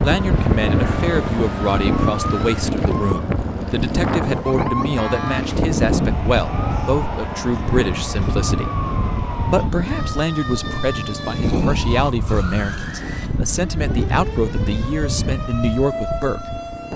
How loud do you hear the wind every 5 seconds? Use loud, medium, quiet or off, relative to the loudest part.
loud, loud, loud, medium.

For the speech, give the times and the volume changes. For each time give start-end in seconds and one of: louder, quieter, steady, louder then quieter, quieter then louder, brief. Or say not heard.
0.0-8.7 steady
9.4-16.6 steady.